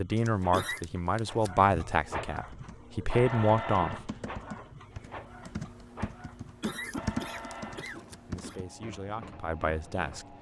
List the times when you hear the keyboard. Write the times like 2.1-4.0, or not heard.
2.2-8.7.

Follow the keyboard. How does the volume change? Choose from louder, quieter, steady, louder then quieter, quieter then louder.
louder.